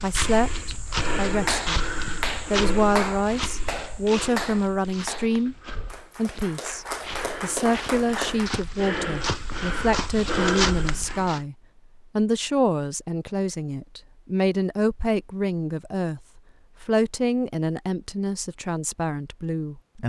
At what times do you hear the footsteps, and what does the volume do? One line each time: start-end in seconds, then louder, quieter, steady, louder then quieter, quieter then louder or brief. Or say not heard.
0.0-11.4 quieter then louder.